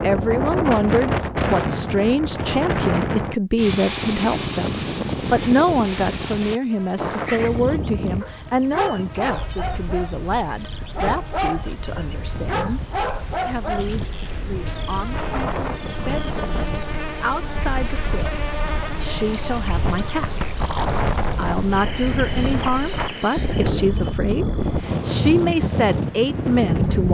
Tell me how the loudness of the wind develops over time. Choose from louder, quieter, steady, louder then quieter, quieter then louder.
quieter then louder.